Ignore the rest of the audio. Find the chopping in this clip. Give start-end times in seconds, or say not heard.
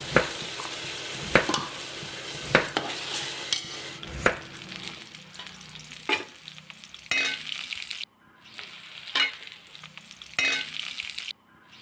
0.0-0.5, 1.1-3.2, 4.0-4.6.